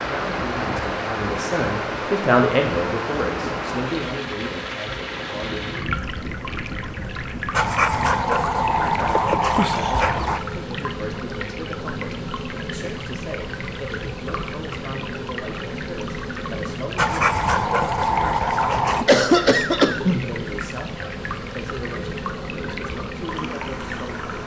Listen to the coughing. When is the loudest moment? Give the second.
19 s.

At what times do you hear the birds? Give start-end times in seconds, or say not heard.
not heard.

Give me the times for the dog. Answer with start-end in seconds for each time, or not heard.
7.5-10.4, 16.9-19.1.